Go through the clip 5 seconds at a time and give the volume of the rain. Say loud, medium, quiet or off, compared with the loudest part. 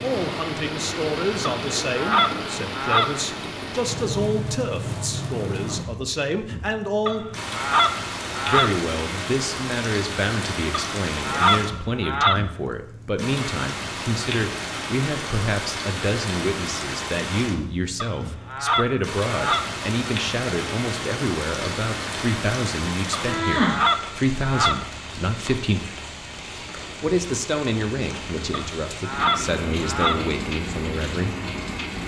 loud, loud, loud, loud, loud, medium, loud.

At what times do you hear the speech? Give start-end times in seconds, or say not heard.
0.0-7.3, 8.4-25.9, 27.0-31.4.